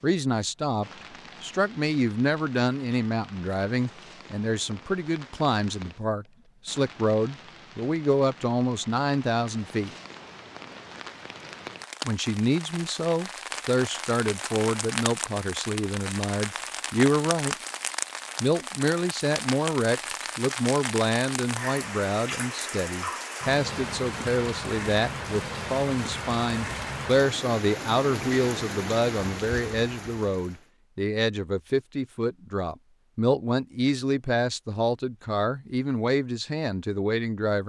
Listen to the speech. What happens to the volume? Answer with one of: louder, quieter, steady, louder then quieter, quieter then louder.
steady.